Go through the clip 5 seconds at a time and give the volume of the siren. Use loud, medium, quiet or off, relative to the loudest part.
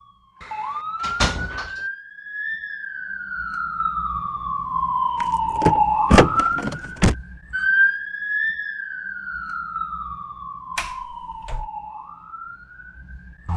medium, loud, quiet.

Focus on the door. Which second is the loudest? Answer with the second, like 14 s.
6 s.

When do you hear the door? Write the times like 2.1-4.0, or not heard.
0.4-1.7, 5.2-7.2, 10.8-11.7.